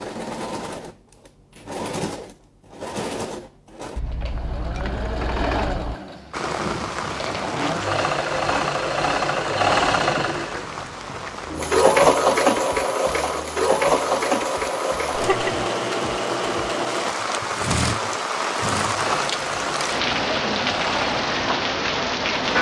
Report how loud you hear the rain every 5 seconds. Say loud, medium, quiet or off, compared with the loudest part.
off, medium, medium, loud, loud.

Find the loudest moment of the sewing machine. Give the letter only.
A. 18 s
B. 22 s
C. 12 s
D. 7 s
C.